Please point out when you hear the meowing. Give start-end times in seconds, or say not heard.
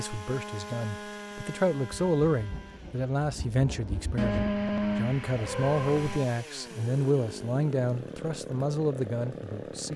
4.2-6.2.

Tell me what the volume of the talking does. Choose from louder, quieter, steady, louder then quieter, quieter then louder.
steady.